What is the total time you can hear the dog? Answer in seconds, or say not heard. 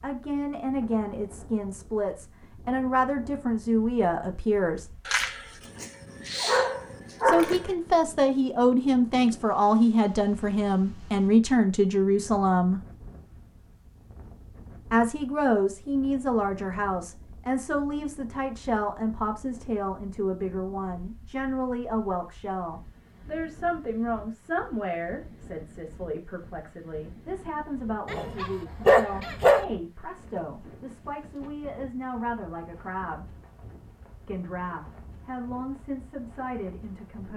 4 s.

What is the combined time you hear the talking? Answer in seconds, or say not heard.
32 s.